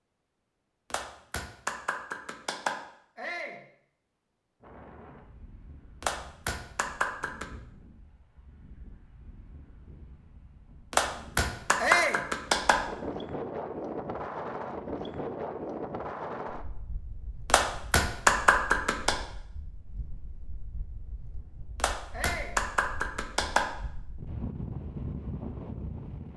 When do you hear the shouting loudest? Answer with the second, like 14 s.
12 s.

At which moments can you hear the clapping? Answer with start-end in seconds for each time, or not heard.
0.9-2.8, 6.0-7.5, 10.9-12.8, 17.4-19.1, 21.8-23.7.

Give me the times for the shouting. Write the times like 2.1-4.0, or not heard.
3.1-3.6, 11.8-12.2, 22.1-22.6.